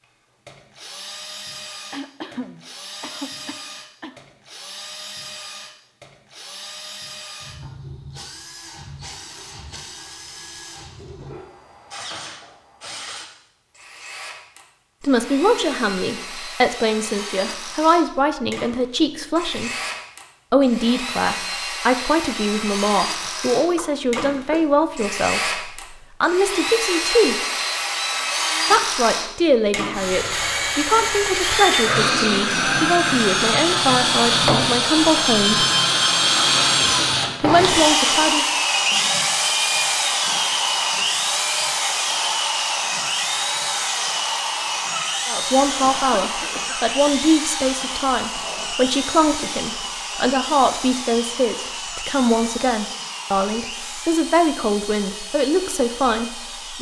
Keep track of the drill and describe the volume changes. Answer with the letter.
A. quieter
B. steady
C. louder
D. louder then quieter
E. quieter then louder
D.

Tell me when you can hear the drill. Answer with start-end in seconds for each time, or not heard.
0.0-56.7.